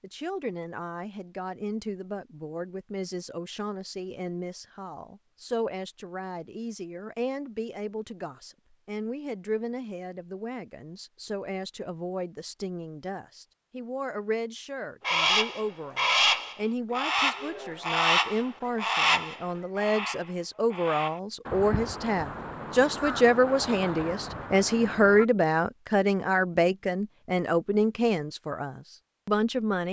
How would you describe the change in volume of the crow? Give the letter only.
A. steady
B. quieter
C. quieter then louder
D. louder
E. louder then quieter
B.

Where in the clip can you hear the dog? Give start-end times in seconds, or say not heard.
not heard.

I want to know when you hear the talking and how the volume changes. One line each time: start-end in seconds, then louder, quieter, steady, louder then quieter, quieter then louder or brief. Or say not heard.
0.0-29.8 louder.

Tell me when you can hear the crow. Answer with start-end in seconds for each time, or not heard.
15.1-25.2.